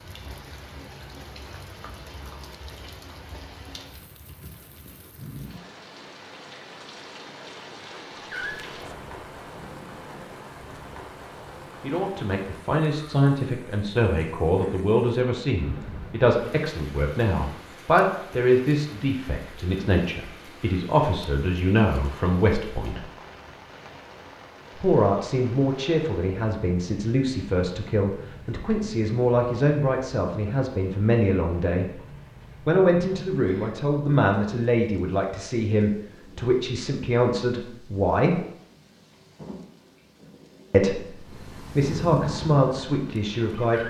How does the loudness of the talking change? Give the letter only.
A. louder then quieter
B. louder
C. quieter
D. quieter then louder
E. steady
E.